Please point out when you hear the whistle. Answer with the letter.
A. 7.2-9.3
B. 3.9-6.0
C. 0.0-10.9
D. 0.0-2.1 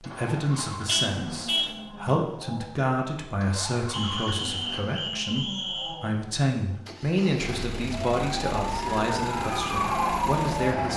B.